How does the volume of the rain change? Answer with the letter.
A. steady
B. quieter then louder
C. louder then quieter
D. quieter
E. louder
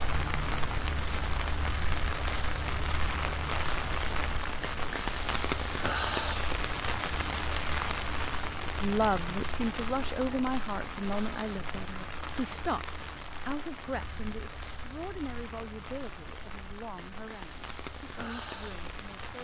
D.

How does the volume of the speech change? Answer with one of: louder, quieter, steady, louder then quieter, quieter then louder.
quieter.